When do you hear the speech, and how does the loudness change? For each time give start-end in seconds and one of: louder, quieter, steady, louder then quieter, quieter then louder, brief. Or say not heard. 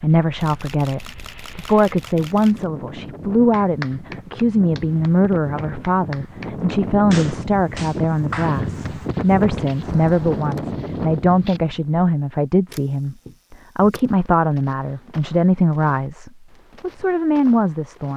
0.0-18.1 steady.